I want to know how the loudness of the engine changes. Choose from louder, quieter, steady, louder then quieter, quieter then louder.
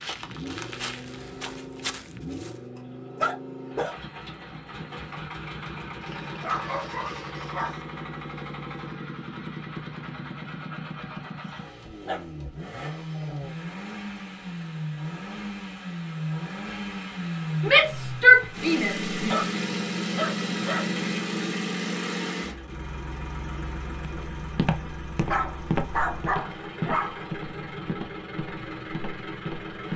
louder then quieter.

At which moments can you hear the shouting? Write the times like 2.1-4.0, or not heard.
17.6-19.5.